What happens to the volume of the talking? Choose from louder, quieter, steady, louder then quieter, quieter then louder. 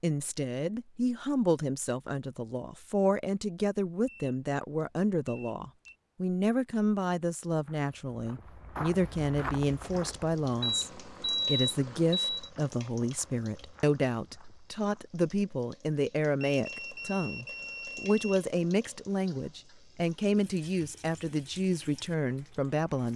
steady.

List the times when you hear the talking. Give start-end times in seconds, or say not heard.
0.0-23.1.